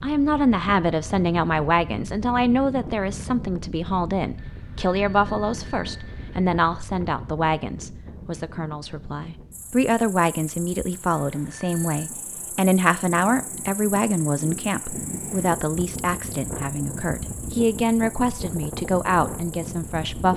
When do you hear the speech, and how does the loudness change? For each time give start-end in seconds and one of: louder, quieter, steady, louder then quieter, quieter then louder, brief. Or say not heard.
0.0-20.3 steady.